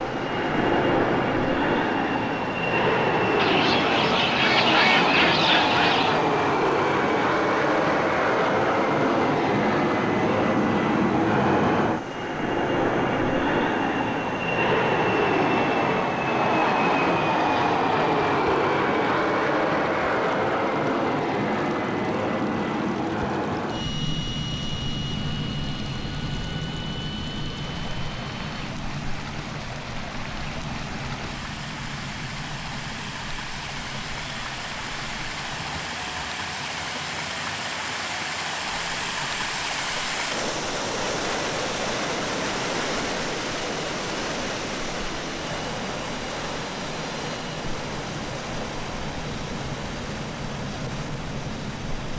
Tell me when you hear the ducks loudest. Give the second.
5 s.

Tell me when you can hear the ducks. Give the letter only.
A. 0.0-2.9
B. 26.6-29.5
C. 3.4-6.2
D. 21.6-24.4
C.